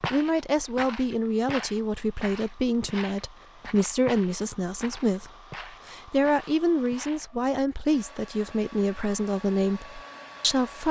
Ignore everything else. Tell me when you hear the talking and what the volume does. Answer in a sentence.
You can hear the talking from 0.1 to 10.8 s, at a steady volume.